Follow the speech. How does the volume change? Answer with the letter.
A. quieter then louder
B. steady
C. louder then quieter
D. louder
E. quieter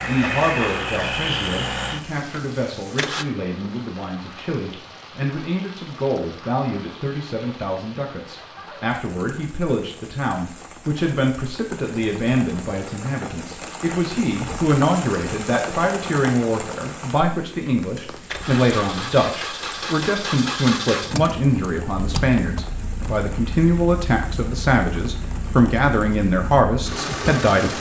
D.